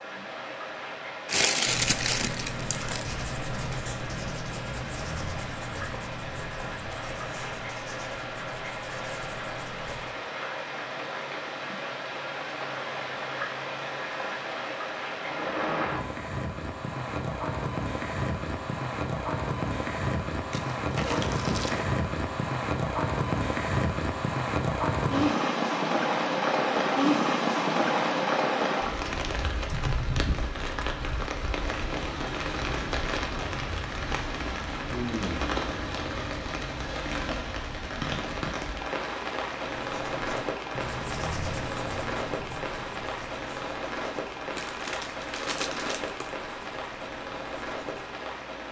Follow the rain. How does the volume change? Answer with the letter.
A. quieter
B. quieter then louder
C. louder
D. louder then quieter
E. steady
D.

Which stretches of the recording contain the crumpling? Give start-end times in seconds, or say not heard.
1.2-3.0, 20.5-21.9, 44.5-46.3.